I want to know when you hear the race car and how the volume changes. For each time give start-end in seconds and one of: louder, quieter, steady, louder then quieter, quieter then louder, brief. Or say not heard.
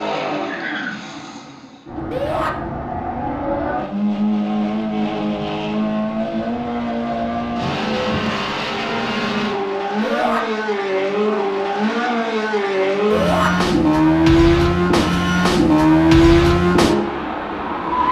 0.0-18.0 louder.